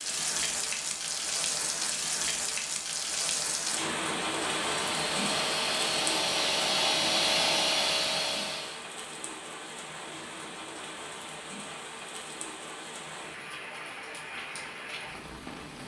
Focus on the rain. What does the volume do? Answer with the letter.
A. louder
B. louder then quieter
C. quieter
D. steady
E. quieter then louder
C.